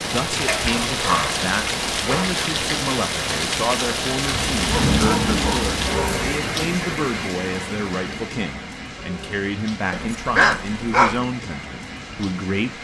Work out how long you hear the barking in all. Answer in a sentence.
The barking can be heard for 5 seconds in total.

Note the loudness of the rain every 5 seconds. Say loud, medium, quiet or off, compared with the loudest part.
loud, loud, medium.